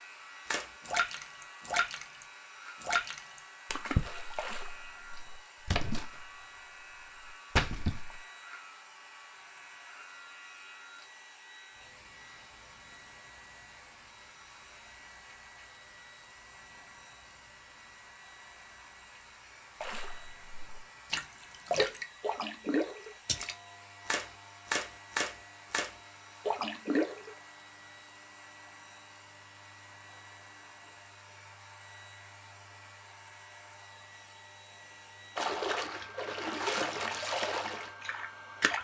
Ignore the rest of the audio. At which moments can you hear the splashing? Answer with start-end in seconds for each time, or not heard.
0.5-6.4, 7.2-8.2, 19.8-27.3, 35.4-38.7.